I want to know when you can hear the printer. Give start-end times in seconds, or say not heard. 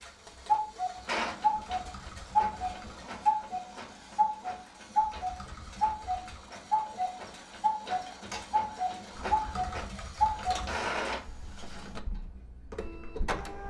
0.0-13.6.